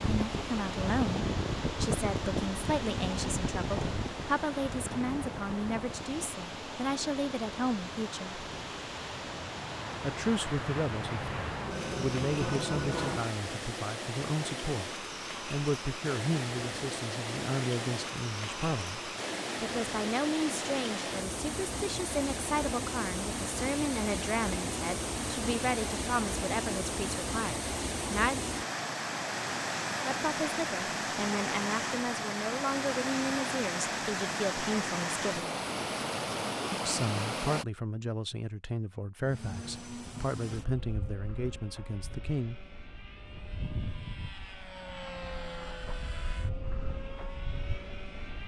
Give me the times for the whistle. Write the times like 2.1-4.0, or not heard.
not heard.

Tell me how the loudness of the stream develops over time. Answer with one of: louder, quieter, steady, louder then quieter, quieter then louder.
louder.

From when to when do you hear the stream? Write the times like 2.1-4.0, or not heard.
0.0-37.6.